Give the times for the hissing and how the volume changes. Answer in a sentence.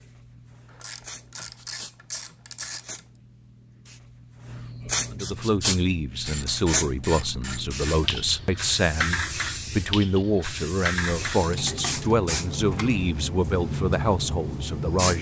The hissing can be heard from 0.0 to 15.1 s, getting louder.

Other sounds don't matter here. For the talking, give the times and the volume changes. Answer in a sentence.
The talking can be heard from 5.1 to 15.1 s, at a steady volume.